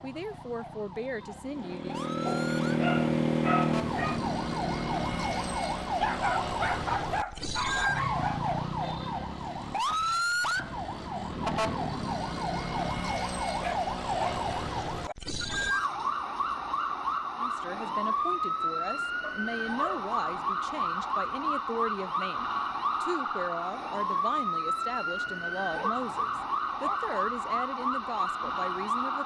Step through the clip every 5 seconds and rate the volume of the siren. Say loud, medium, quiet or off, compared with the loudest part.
medium, loud, loud, loud, loud, loud.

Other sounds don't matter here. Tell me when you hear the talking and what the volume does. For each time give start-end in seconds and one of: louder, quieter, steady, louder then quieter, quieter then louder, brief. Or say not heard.
0.0-1.9 brief
17.4-29.2 steady.